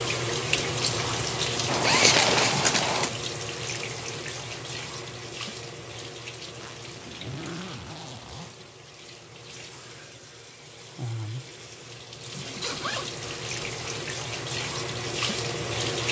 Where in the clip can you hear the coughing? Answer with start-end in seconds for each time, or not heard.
not heard.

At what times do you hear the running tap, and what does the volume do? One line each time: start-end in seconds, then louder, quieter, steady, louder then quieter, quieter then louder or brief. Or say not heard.
0.0-16.0 quieter then louder.